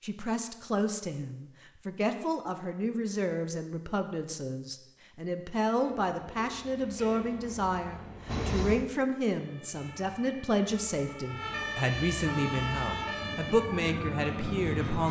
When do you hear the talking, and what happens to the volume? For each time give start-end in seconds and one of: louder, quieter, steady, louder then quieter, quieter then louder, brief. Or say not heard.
0.0-15.0 steady.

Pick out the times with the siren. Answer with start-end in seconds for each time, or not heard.
9.3-14.9.